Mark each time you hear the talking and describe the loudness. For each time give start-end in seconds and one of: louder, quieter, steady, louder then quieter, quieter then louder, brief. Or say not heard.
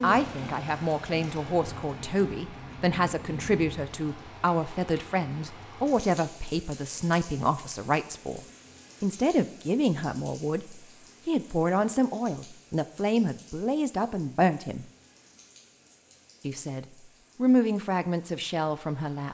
0.0-14.8 steady
16.4-19.2 brief.